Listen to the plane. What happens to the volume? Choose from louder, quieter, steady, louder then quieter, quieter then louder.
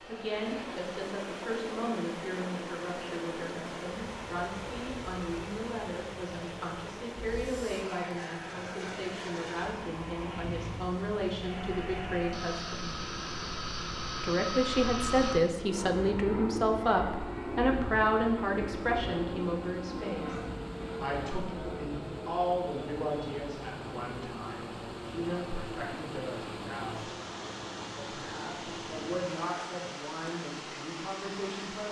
louder then quieter.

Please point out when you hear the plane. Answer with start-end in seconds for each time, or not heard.
0.0-29.6.